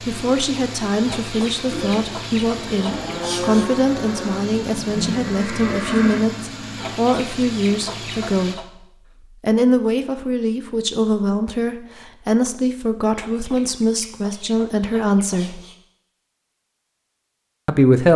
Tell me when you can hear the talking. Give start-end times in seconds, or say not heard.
0.0-8.7, 9.4-15.6, 17.6-18.1.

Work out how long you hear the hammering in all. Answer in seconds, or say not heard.
not heard.